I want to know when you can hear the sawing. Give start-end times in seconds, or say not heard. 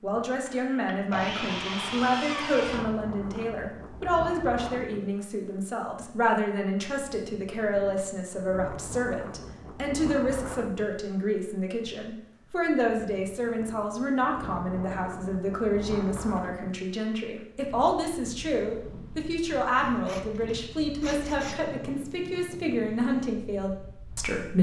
0.5-2.9, 19.8-21.6.